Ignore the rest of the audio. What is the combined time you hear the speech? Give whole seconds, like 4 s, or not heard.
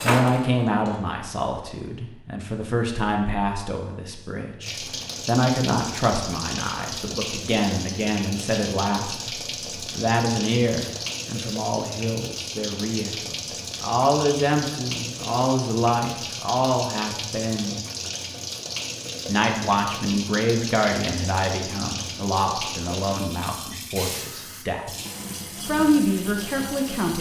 24 s.